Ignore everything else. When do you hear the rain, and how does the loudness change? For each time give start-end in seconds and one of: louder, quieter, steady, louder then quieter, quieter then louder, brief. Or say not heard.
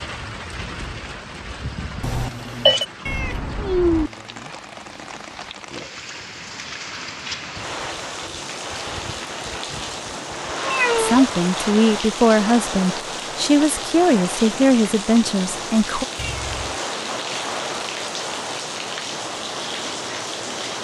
0.0-20.7 louder.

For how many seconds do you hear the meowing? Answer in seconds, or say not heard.
2 s.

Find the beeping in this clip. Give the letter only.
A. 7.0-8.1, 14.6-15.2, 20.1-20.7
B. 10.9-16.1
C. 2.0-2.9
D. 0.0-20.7
C.